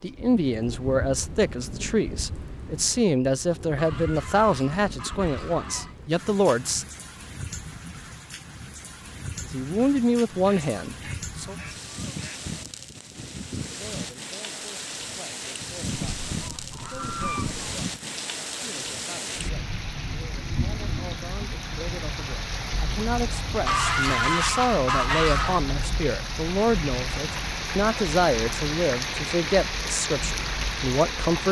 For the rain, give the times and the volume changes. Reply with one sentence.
You can hear the rain from 0.0 to 31.4 s, getting louder.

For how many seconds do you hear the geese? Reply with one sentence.
The geese can be heard for 8 seconds in total.